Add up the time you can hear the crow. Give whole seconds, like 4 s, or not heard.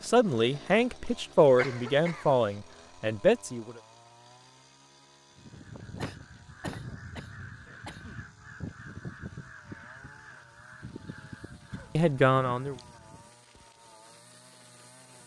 8 s.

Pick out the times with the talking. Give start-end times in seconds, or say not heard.
0.0-3.8, 11.9-12.8.